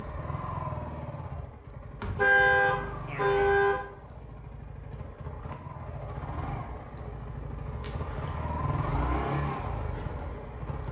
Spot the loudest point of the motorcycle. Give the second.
9 s.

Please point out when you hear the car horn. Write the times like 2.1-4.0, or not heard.
2.0-3.9, 7.8-8.4.